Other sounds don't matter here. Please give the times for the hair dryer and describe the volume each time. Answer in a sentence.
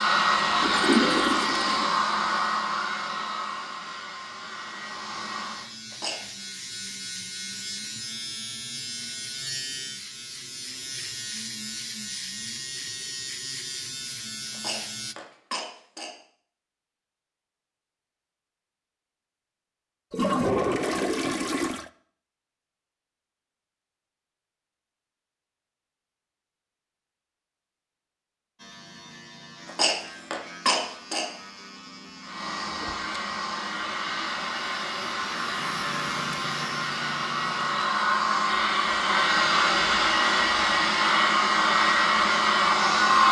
You can hear the hair dryer from 0.0 to 5.7 s, getting quieter; and from 32.2 to 43.2 s, getting louder.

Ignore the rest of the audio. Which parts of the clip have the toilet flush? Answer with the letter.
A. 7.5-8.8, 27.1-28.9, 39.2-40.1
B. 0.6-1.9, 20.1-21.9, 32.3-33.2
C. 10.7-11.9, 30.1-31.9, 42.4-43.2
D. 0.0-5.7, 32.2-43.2
B.